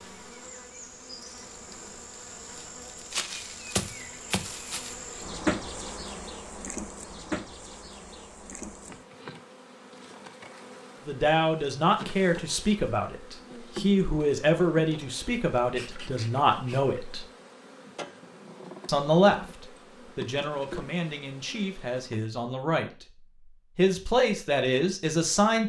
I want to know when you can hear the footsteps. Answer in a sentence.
You can't hear the footsteps here.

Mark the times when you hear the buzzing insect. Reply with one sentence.
You can hear the buzzing insect from 0.0 to 22.2 s.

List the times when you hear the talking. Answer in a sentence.
The talking can be heard from 11.1 to 17.2 s, from 18.9 to 23.1 s and from 23.8 to 25.6 s.